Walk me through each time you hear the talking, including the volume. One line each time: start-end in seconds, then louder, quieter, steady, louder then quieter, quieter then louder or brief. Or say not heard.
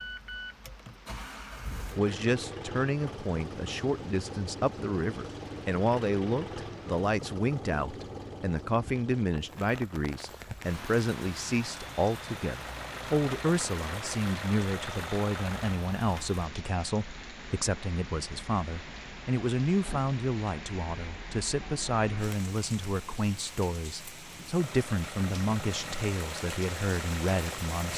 1.9-27.9 steady.